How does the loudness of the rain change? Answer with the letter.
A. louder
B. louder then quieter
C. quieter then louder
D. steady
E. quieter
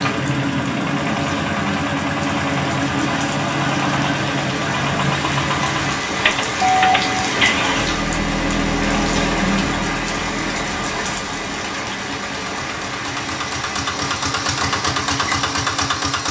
B.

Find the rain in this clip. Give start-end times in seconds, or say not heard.
0.0-15.9.